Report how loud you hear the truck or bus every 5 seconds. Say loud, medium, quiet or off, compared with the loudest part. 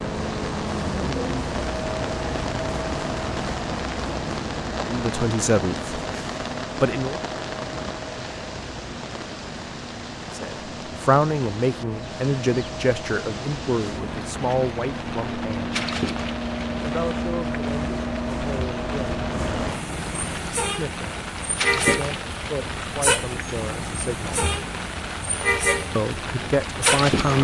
loud, medium, medium, loud, loud, loud.